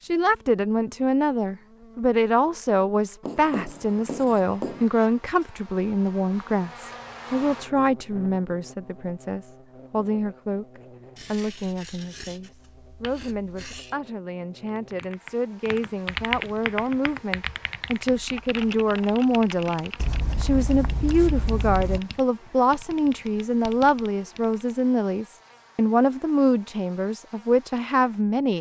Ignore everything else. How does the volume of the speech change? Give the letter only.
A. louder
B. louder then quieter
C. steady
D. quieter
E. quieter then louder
E.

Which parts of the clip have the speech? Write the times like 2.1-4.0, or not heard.
0.0-28.5.